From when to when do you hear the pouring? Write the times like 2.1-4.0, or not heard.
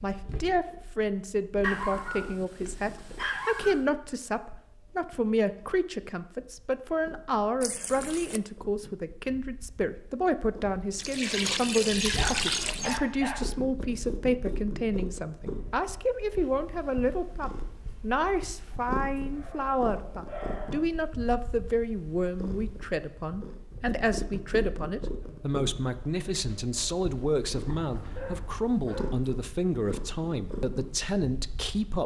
7.6-8.4, 10.9-13.0, 27.6-28.7.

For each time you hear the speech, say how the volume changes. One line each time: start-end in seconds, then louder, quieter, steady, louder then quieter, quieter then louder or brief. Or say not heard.
0.0-32.0 steady.